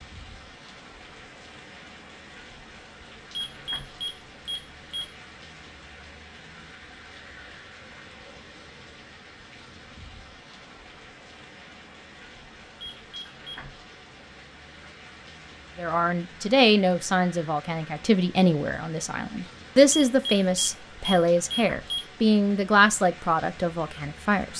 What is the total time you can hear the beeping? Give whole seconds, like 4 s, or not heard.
5 s.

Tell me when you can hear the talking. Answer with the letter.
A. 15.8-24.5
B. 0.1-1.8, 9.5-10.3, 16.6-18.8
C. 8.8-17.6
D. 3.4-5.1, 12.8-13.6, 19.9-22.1
A.